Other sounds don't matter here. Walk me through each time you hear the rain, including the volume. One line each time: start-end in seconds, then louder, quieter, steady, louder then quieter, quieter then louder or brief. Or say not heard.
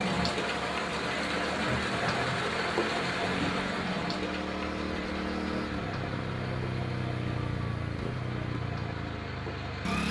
0.0-10.0 quieter.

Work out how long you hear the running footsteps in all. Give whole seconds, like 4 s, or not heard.
not heard.